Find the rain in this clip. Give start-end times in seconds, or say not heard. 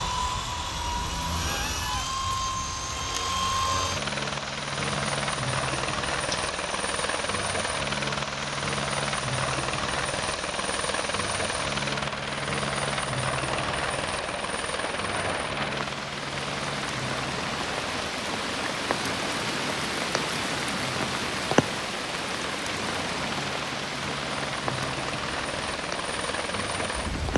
0.0-27.3.